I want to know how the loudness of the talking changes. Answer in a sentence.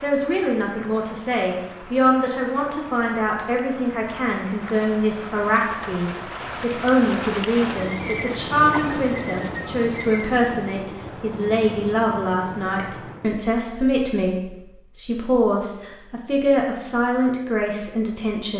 The loudness of the talking stays about the same.